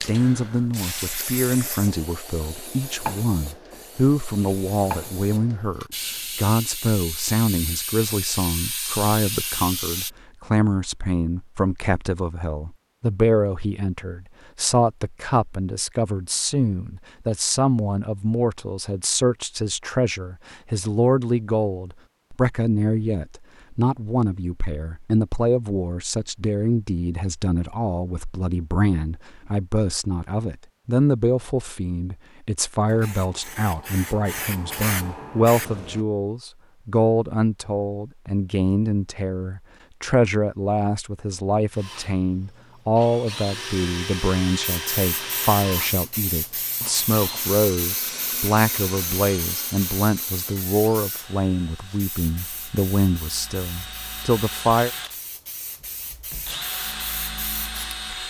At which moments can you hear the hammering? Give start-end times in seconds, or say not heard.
not heard.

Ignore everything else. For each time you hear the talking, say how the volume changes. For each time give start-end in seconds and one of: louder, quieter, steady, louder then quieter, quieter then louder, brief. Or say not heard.
0.0-54.9 steady.